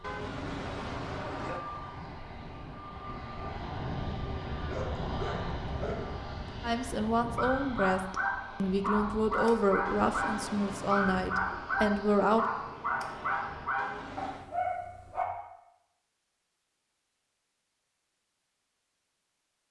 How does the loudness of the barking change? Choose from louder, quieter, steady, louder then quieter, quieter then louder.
louder.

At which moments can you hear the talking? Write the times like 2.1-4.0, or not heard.
6.6-12.4.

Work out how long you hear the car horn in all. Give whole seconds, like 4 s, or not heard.
4 s.